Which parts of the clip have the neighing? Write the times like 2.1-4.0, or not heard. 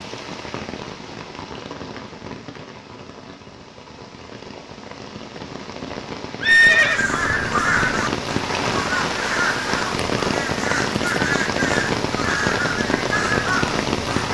6.4-7.0.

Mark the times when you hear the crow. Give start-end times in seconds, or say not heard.
6.7-14.2.